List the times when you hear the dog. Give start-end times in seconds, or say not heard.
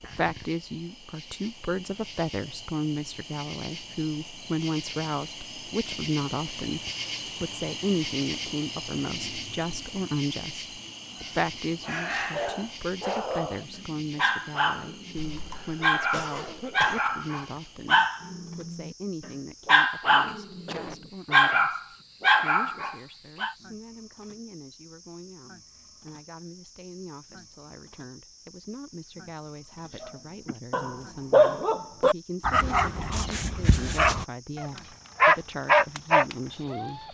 11.2-23.6, 30.0-37.0.